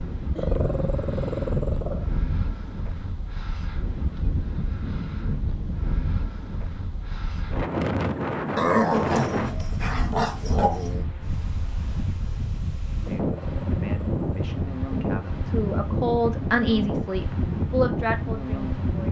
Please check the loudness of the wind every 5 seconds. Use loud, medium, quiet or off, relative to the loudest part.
medium, loud, loud, loud.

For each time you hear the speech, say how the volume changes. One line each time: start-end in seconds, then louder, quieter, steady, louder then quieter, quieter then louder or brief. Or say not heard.
13.1-19.0 louder.